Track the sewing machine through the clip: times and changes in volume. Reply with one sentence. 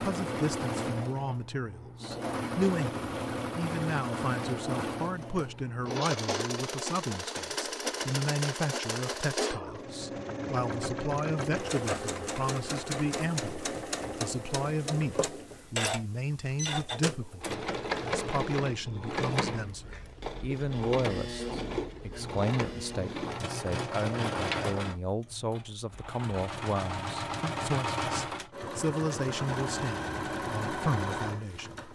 You can hear the sewing machine from 0.0 to 31.8 s, at a steady volume.